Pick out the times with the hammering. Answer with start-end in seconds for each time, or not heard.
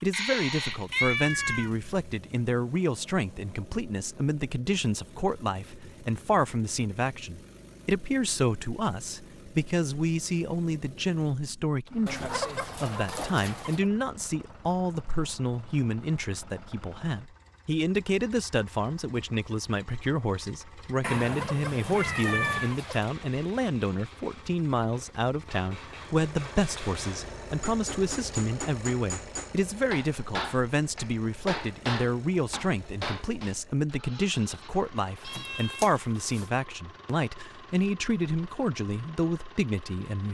22.5-33.5.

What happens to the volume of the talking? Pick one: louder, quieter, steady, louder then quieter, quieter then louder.
steady.